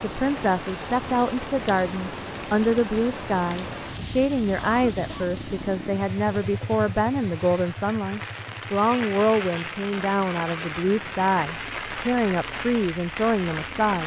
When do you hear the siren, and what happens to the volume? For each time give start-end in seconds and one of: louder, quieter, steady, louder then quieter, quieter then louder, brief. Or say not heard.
not heard.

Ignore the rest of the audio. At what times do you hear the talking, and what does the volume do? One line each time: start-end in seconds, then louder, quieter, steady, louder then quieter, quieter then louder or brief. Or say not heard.
0.0-14.0 steady.